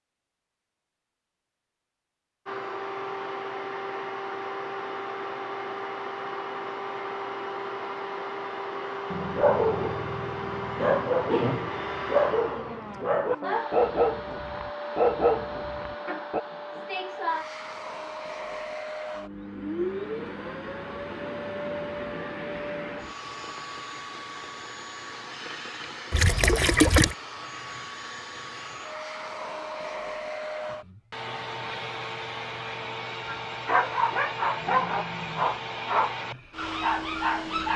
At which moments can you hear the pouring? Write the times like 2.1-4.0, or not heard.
26.1-27.1.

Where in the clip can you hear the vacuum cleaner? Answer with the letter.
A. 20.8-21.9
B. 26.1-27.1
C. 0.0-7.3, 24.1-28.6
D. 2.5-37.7
D.